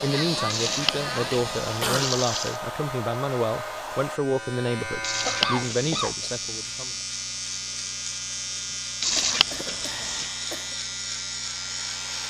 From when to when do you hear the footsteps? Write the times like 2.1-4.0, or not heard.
not heard.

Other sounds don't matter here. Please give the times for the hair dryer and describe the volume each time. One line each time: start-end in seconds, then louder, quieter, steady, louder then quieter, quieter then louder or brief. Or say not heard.
0.0-4.2 steady
9.8-12.2 brief.